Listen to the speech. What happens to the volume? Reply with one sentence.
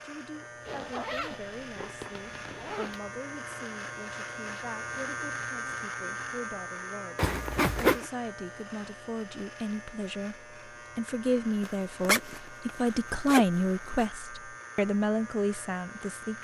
The loudness of the speech goes up.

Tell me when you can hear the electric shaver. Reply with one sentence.
The electric shaver can be heard from 0.0 to 16.3 s.